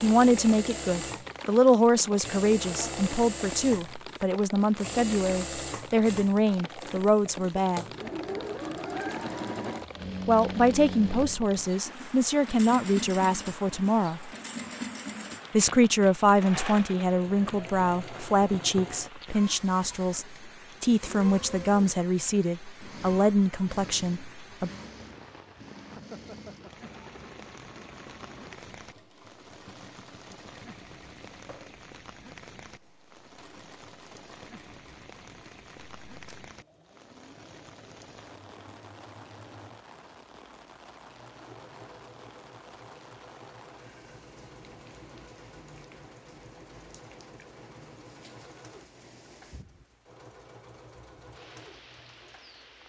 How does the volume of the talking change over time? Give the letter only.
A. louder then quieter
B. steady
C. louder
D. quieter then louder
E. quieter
B.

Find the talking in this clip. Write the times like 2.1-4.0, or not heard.
0.0-7.8, 10.2-14.3, 15.5-24.7.